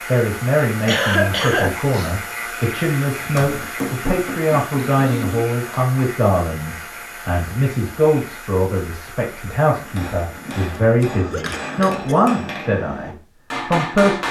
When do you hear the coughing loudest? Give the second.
1 s.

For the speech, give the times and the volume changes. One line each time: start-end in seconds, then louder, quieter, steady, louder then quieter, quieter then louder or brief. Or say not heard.
0.1-14.2 steady.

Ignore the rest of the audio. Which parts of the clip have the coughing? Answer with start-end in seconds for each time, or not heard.
0.8-2.1, 5.0-5.5, 10.3-12.4.